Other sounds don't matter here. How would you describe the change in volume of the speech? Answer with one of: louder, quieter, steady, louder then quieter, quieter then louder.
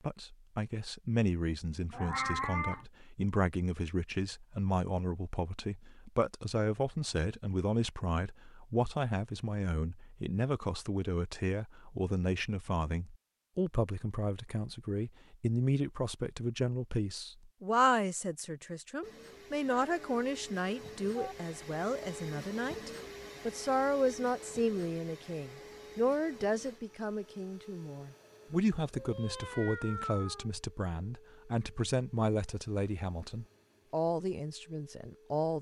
steady.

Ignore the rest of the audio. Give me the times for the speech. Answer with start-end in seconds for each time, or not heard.
0.0-35.5.